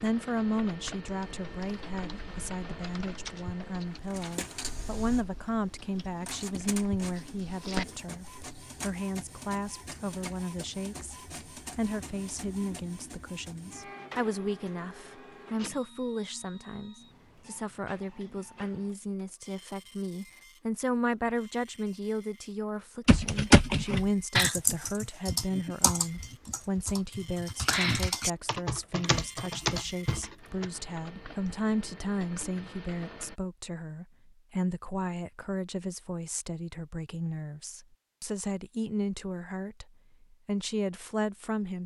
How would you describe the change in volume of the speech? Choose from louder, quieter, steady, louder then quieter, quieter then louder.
steady.